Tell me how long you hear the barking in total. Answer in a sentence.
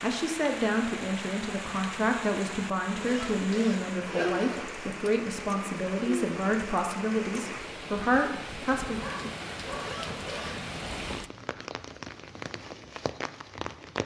You can hear the barking for 2 seconds altogether.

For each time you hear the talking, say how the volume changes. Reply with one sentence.
You can hear the talking from 0.0 to 9.0 s, at a steady volume.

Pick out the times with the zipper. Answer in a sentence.
You can hear the zipper from 3.0 to 4.8 s and from 9.8 to 10.7 s.